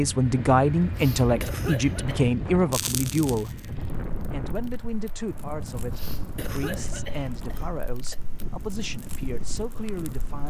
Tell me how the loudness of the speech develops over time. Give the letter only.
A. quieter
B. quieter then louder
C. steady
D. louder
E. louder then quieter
A.